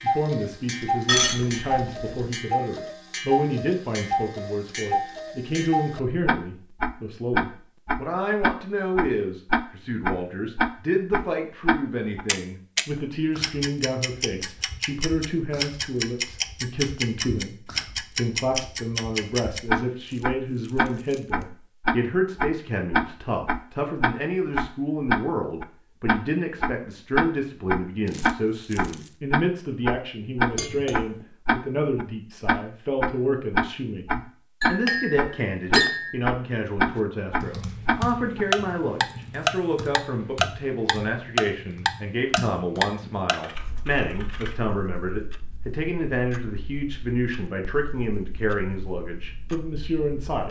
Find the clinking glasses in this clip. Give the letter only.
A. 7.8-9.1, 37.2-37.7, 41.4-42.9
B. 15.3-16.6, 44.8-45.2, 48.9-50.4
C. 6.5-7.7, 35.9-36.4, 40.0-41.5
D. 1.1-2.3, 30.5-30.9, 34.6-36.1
D.